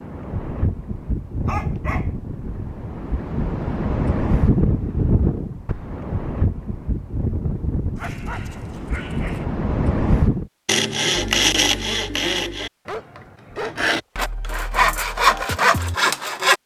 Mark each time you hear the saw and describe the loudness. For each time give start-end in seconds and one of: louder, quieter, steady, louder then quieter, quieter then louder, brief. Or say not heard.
10.7-16.6 quieter then louder.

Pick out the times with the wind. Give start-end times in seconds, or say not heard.
0.0-10.4.